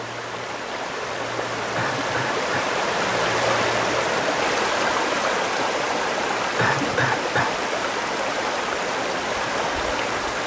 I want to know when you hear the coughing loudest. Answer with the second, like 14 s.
7 s.